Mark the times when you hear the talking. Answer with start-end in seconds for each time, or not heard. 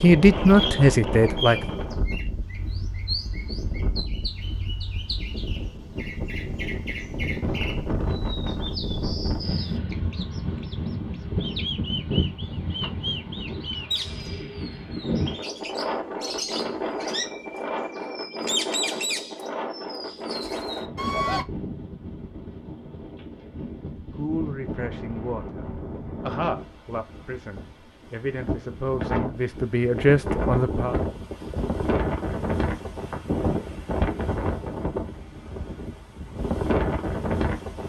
0.0-1.6, 24.1-30.9.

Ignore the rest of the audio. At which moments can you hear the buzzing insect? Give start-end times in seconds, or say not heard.
not heard.